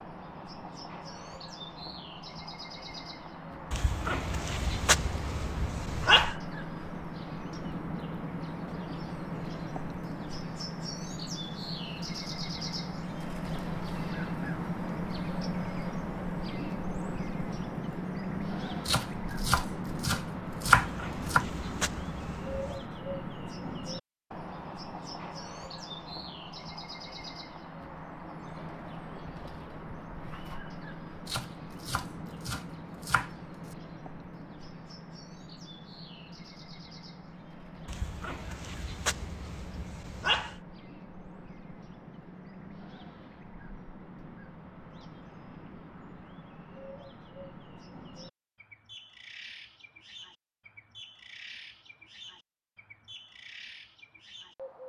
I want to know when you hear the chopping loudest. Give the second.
21 s.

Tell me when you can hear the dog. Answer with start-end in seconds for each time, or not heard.
3.7-6.3, 20.8-22.9, 37.9-40.5.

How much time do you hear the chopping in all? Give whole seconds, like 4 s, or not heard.
5 s.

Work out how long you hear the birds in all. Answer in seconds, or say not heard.
55 s.